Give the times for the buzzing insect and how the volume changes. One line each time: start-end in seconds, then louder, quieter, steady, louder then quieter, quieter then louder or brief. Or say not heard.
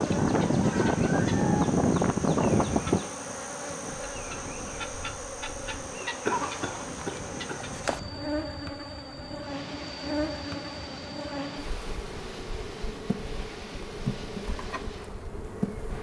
0.0-15.9 steady.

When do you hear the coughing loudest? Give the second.
6 s.